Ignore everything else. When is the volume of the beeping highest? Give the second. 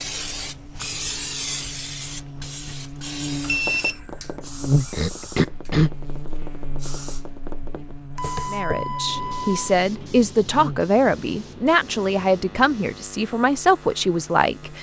4 s.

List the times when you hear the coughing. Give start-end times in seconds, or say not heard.
4.9-5.9.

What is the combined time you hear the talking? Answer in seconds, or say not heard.
6 s.